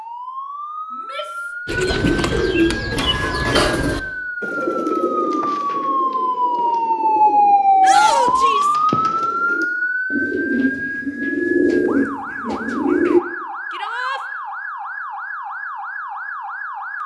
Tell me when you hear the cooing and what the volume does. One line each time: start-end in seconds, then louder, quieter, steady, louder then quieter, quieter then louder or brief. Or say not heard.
1.6-13.2 quieter then louder.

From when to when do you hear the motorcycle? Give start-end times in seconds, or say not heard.
not heard.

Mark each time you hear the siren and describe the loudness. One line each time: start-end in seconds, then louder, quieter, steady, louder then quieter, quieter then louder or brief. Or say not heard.
0.0-17.0 louder then quieter.